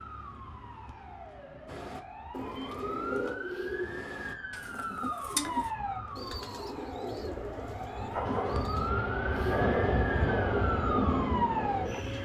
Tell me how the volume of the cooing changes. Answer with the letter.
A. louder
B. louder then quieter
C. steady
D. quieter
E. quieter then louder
D.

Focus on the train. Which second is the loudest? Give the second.
10 s.